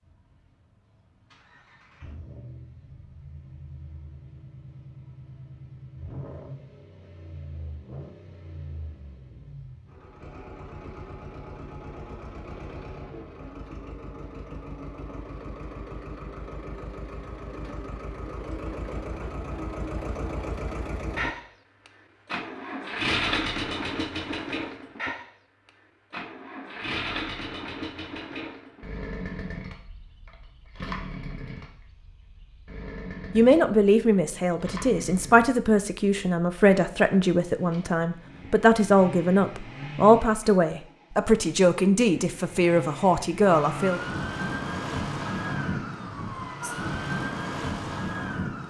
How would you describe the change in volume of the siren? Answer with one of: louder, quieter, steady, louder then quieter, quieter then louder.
steady.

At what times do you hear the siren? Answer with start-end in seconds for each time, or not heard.
43.5-48.6.